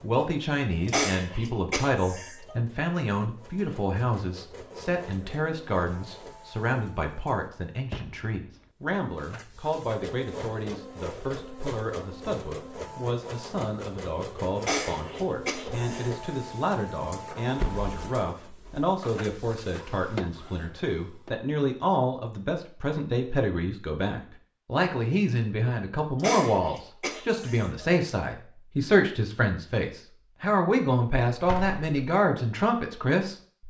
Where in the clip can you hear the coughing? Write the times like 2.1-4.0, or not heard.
0.8-2.6, 14.6-16.3, 26.1-27.9.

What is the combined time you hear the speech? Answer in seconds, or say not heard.
33 s.